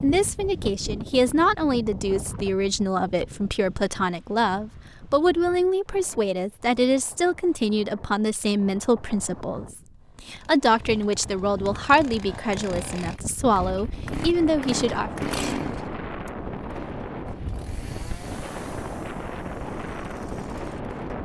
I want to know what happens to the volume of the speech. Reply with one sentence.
The loudness of the speech stays about the same.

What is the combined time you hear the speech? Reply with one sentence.
The speech can be heard for 15 seconds in total.